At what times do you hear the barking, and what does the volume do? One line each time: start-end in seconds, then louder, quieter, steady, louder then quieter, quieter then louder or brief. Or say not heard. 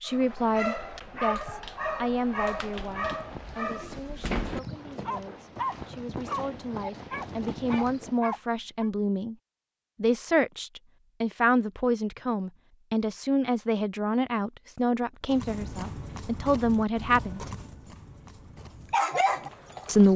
0.1-8.9 steady
18.9-19.9 brief.